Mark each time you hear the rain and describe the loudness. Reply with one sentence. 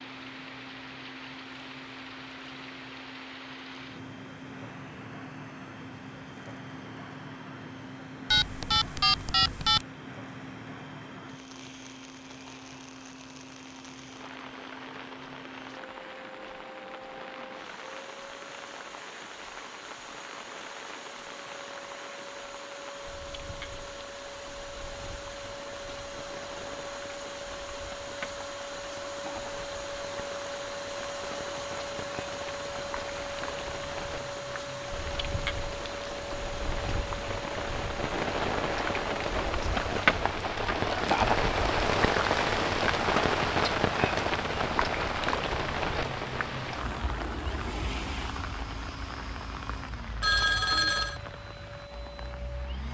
You can hear the rain from 0.0 to 52.8 s, getting louder.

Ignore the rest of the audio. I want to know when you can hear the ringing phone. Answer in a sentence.
You can hear the ringing phone from 8.3 to 9.8 s and from 50.2 to 51.2 s.